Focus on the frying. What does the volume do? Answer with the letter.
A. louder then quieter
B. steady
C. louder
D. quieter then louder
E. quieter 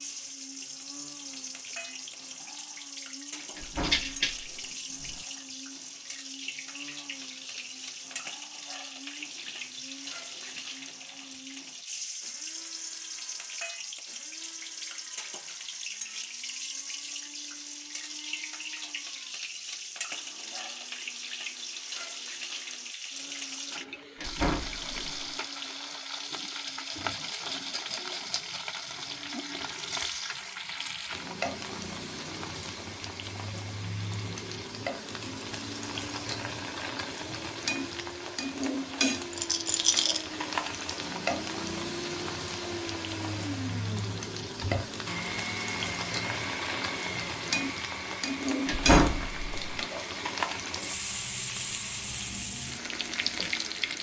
C.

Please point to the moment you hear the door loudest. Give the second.
49 s.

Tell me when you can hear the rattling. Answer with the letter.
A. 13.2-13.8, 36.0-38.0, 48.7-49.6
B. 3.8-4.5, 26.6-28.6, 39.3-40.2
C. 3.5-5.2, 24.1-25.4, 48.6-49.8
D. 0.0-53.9
B.